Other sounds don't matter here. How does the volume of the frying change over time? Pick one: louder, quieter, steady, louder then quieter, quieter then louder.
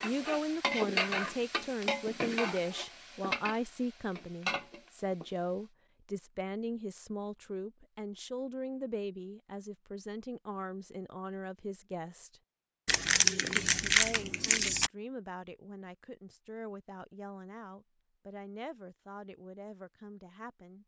quieter then louder.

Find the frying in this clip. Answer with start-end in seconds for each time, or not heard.
0.0-5.7.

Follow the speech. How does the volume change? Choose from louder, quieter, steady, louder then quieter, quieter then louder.
quieter.